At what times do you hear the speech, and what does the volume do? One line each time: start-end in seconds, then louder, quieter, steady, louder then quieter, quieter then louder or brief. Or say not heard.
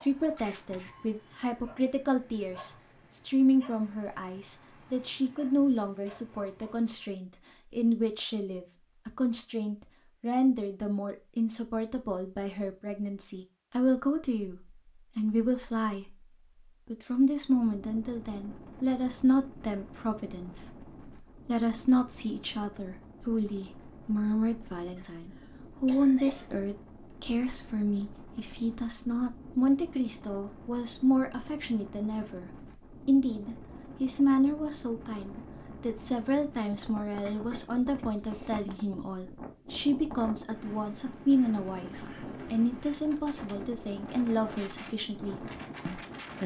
0.0-46.4 steady.